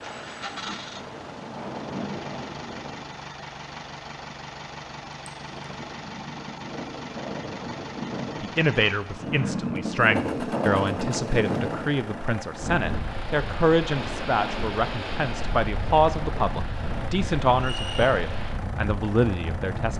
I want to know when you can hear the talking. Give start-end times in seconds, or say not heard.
8.4-19.9.